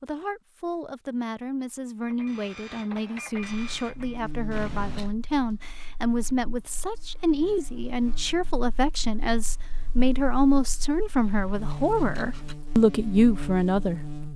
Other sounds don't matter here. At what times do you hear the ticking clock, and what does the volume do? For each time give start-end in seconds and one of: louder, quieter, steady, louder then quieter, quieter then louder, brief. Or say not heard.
not heard.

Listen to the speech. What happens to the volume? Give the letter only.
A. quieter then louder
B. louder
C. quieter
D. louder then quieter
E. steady
B.